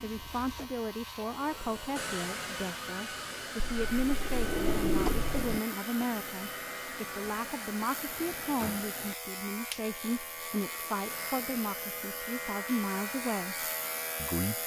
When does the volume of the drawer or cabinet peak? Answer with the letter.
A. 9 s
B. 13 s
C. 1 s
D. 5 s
D.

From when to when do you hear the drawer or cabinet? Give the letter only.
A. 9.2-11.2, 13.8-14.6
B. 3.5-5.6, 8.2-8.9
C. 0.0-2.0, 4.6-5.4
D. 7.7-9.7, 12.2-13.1
B.